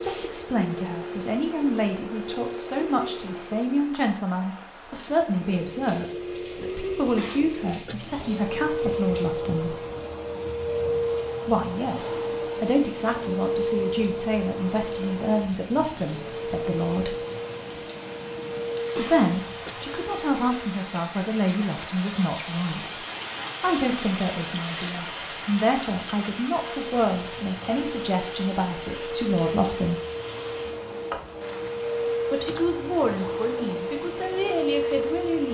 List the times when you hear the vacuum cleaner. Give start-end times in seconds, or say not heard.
0.0-4.0, 5.0-20.8, 26.5-35.5.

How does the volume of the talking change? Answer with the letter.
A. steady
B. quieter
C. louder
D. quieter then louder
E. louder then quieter
A.